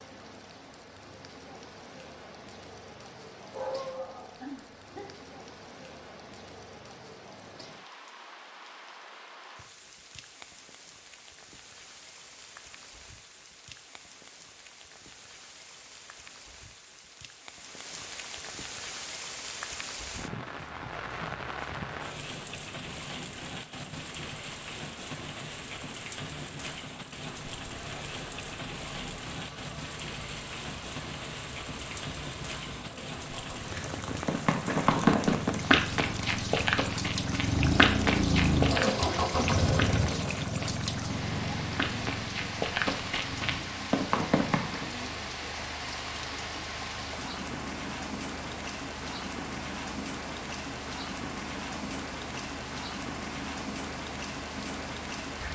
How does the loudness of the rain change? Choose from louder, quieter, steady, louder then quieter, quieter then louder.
louder.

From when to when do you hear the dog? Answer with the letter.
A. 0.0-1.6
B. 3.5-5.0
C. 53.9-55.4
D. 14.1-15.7
B.